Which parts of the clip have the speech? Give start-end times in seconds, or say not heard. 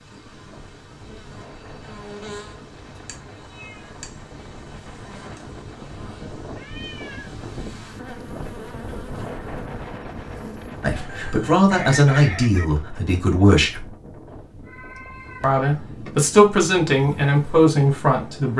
10.8-13.9, 15.4-18.5.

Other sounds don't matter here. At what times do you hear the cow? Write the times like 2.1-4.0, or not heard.
not heard.